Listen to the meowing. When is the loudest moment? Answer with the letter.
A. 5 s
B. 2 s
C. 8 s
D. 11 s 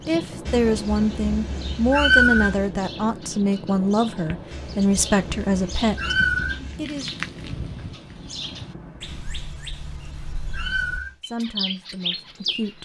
B.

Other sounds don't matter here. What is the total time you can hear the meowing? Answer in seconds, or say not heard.
7 s.